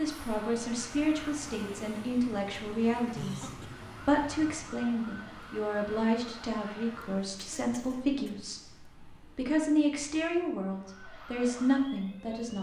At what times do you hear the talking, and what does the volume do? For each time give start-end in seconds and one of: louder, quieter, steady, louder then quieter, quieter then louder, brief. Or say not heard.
0.0-12.5 steady.